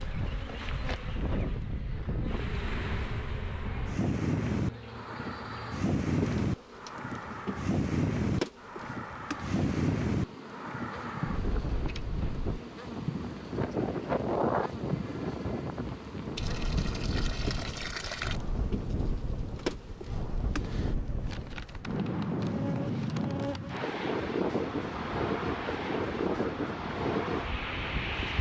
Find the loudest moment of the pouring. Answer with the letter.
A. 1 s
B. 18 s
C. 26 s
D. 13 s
B.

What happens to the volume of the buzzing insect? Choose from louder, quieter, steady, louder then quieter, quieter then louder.
steady.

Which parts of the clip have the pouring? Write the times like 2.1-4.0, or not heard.
16.4-18.4.